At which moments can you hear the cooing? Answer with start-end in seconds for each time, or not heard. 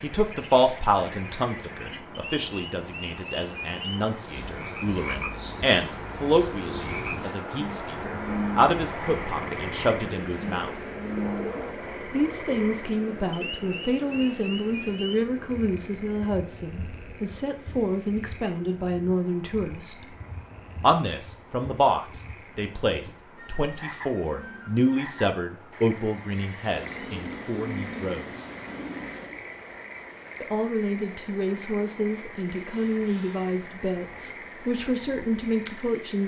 11.1-13.3, 26.7-29.4.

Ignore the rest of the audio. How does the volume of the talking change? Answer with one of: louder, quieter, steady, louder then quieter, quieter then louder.
steady.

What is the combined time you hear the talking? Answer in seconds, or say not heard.
32 s.